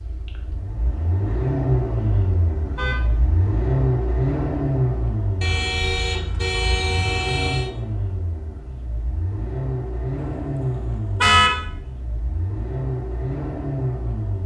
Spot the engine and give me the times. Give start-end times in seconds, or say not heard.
0.0-14.4.